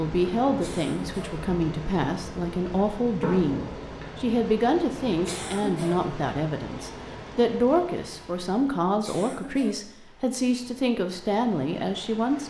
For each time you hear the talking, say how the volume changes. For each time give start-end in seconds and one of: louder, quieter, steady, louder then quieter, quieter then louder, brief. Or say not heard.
0.0-12.4 steady.